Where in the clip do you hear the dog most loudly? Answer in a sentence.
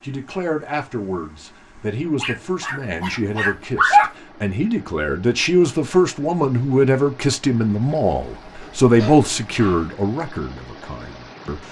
The volume of the dog peaks at 4 seconds.